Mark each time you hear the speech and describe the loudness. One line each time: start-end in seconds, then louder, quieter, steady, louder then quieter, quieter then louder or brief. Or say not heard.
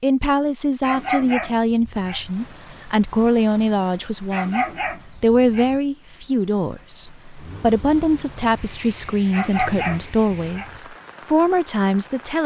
0.0-12.4 steady.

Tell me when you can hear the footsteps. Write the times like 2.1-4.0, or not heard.
not heard.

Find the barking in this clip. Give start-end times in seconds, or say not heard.
0.8-2.3, 4.3-5.8, 9.3-10.8.